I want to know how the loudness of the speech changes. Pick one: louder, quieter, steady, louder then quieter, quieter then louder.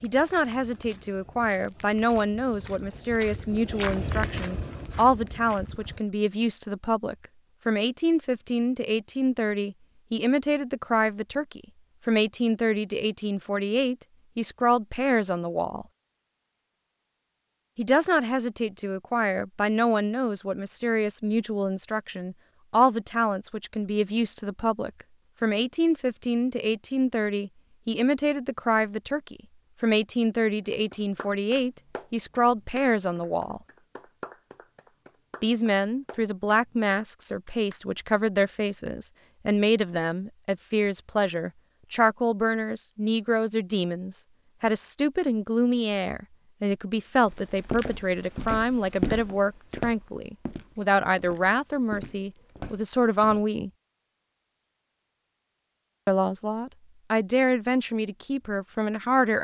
steady.